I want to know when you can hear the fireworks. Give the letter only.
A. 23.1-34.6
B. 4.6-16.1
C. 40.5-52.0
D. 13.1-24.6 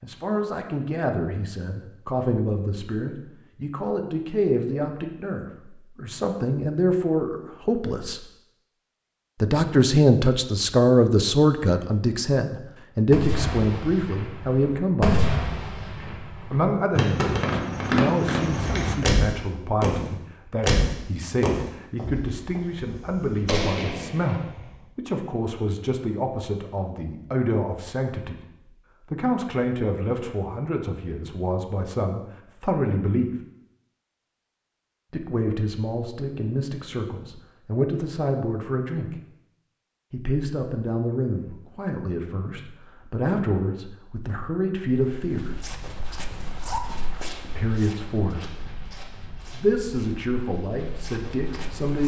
D.